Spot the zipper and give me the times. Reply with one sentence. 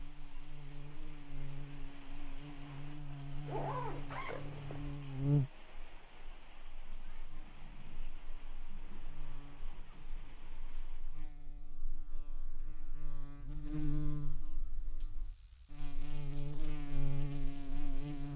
You can hear the zipper from 3.5 to 4.8 s.